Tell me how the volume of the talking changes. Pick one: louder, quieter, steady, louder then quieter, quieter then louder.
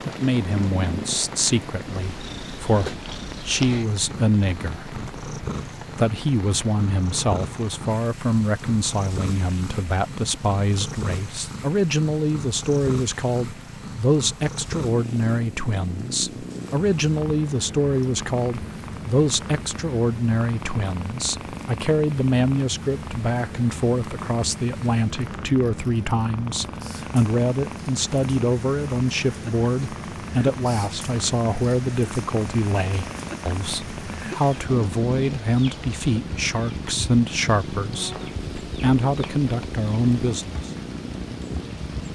steady.